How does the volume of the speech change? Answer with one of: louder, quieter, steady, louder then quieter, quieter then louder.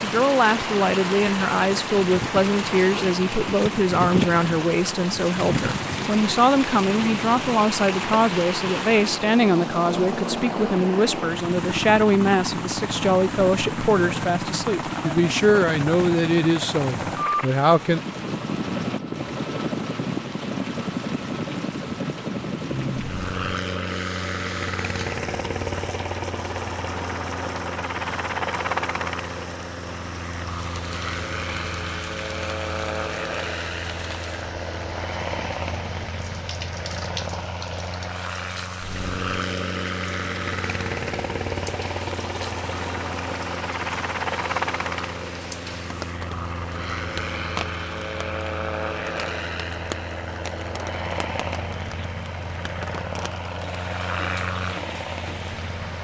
steady.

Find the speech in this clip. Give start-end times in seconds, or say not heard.
0.0-18.0.